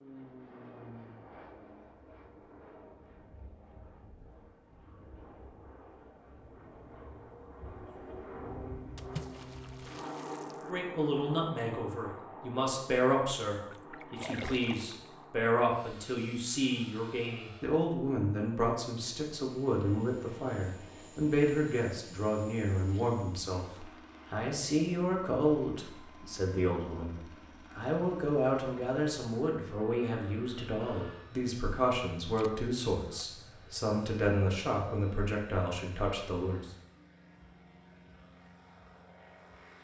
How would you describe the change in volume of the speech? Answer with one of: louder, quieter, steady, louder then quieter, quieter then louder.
steady.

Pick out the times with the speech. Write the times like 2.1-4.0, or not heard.
10.7-36.7.